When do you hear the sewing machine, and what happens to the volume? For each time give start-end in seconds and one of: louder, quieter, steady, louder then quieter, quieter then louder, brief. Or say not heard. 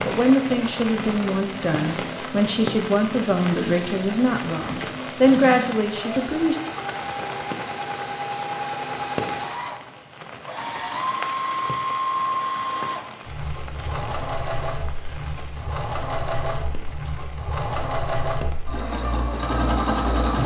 0.0-20.4 louder.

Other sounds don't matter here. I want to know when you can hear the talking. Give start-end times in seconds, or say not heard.
0.0-6.5.